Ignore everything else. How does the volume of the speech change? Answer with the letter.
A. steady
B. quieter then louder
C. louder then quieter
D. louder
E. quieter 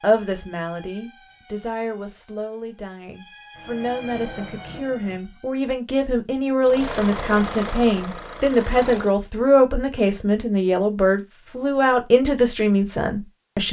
D.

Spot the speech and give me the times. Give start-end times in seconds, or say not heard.
0.0-13.6.